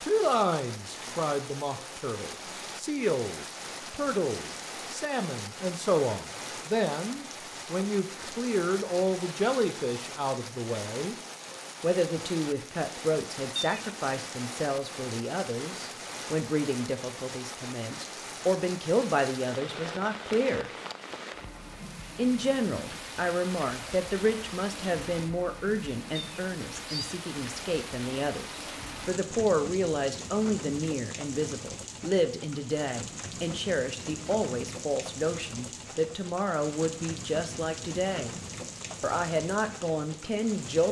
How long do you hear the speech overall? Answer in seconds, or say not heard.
38 s.